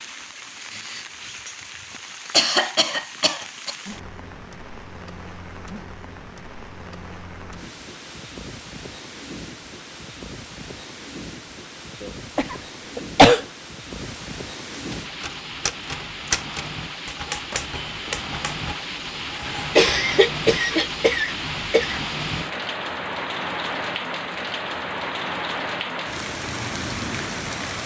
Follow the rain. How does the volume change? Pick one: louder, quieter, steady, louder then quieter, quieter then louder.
louder.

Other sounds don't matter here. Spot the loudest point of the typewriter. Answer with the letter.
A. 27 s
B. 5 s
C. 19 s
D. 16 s
D.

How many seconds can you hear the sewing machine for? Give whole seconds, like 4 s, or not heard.
not heard.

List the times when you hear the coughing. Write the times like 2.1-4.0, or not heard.
1.9-3.8, 12.0-13.4, 19.8-22.0.